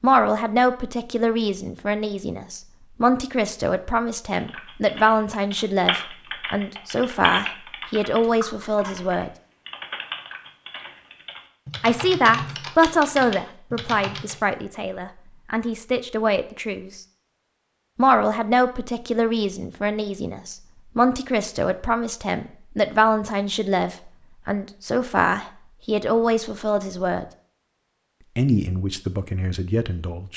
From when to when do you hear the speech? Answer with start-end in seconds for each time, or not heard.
0.0-9.3, 11.8-17.0, 17.9-27.2, 28.4-30.3.